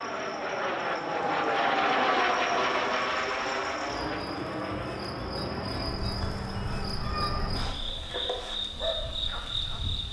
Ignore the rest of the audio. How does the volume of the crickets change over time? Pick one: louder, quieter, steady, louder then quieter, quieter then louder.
louder.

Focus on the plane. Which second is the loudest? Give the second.
2 s.